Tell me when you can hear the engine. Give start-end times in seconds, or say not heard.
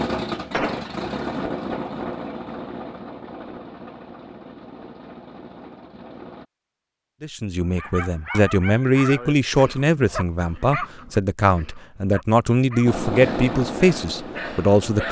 0.0-6.5, 12.8-15.0.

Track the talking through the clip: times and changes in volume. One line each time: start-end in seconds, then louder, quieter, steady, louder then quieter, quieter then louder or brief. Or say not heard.
7.2-15.0 steady.